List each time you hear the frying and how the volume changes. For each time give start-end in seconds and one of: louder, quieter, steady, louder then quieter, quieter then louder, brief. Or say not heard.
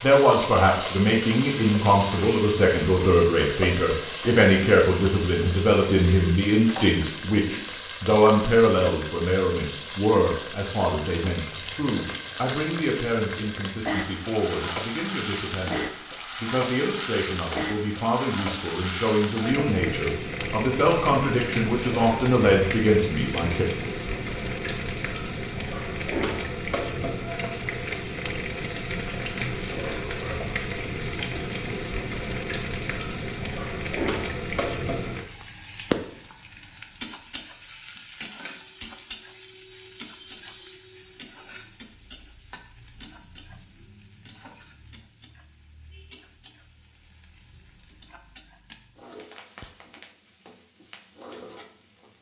0.0-52.1 quieter.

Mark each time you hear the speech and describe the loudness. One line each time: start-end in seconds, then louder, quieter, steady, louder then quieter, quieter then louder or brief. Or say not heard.
0.0-23.6 quieter then louder.